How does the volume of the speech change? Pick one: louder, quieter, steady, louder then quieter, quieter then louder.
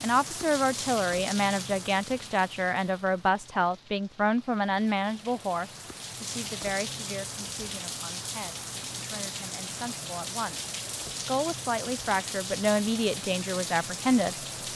quieter then louder.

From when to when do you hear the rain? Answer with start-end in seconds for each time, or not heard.
0.0-14.7.